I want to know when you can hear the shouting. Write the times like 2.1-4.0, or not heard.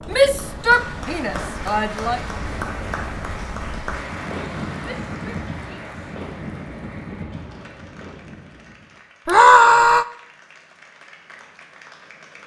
0.1-2.2, 4.8-6.0, 9.2-10.1.